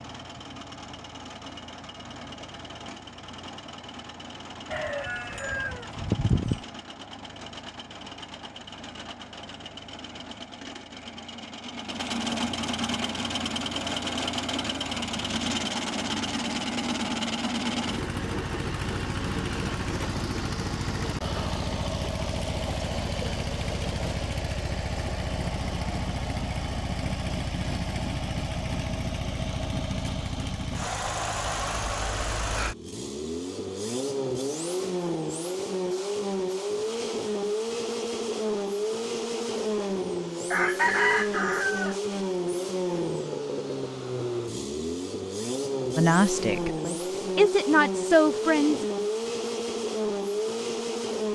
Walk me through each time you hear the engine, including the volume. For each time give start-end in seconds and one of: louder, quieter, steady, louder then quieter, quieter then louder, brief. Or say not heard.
0.0-51.2 louder.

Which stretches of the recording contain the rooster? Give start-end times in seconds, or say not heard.
4.7-6.6, 40.5-42.0.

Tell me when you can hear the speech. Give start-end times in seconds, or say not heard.
46.0-48.9.